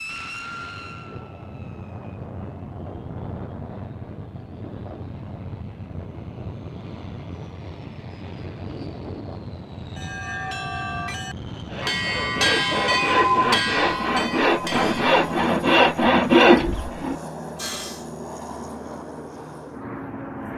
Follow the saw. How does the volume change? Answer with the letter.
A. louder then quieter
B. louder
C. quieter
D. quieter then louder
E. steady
B.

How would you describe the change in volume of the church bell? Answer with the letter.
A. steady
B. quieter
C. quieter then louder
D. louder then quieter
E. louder
D.